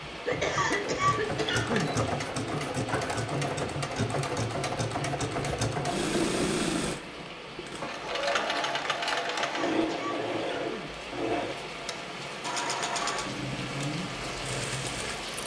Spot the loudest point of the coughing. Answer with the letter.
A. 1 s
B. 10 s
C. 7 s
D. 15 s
A.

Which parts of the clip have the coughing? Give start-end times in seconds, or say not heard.
0.2-1.9, 9.4-10.9.